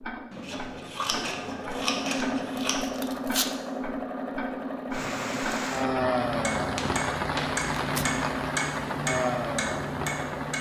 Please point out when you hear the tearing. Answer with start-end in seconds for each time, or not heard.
2.5-3.5, 7.8-8.2.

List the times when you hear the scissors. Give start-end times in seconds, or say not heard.
0.3-2.8, 6.8-7.5.